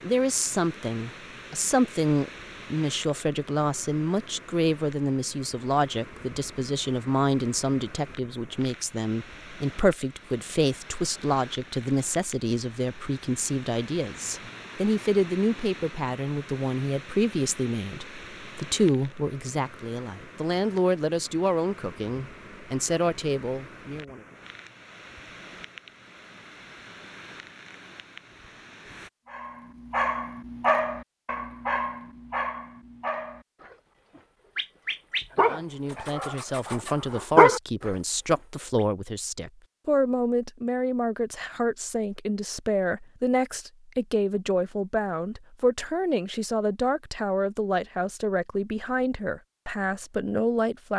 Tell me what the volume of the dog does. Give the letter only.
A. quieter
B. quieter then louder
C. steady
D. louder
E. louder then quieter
B.